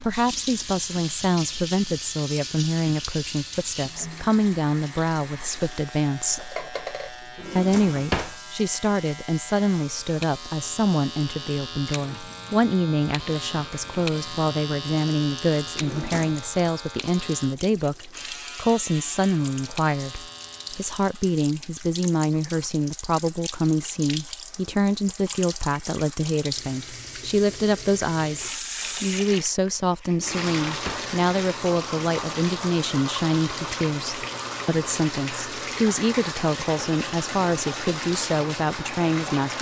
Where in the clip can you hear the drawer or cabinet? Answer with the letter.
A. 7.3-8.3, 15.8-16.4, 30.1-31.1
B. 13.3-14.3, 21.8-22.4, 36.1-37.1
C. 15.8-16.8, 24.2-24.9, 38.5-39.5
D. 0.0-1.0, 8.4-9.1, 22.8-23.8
A.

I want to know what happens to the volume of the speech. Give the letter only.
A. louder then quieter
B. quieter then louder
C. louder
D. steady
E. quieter
D.